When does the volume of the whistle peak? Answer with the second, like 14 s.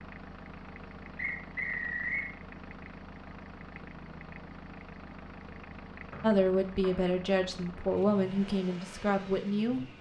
2 s.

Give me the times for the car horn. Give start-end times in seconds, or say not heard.
not heard.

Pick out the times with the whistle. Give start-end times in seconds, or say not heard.
1.1-2.3, 6.1-7.1.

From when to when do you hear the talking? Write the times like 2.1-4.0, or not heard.
6.2-9.9.